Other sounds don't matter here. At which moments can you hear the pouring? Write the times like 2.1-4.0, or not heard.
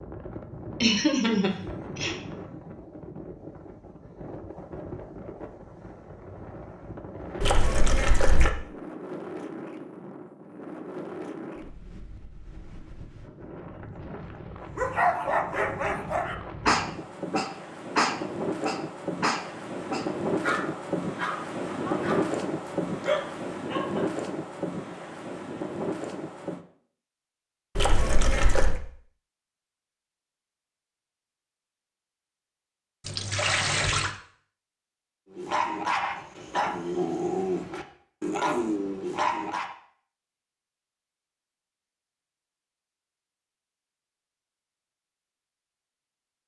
7.4-8.5, 27.8-28.8, 33.0-34.1.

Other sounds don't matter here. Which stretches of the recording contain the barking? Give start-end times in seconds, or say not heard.
14.8-24.1, 35.4-39.7.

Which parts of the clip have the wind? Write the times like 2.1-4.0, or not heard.
0.0-26.6.